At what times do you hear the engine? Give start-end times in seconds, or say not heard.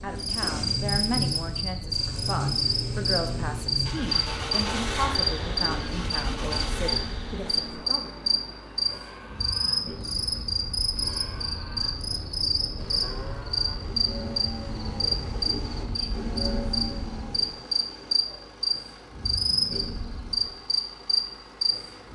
0.0-22.0.